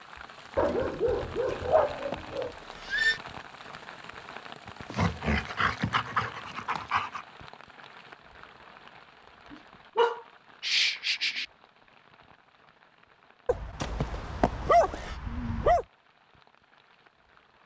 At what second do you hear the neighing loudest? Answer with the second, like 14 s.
3 s.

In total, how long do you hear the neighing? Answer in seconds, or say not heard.
3 s.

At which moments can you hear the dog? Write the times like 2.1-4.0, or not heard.
0.6-2.5, 4.9-7.2, 9.5-11.4, 13.4-15.8.